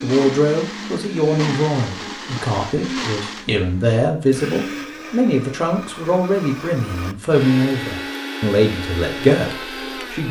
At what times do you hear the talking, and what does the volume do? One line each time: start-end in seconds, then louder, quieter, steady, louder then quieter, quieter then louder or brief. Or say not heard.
0.0-10.2 steady.